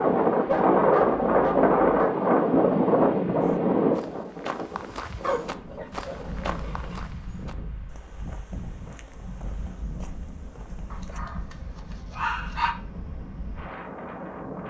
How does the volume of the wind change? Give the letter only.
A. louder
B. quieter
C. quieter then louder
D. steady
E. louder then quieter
B.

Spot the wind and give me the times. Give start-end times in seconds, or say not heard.
0.0-14.6.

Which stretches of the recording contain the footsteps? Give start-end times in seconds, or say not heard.
3.4-11.2.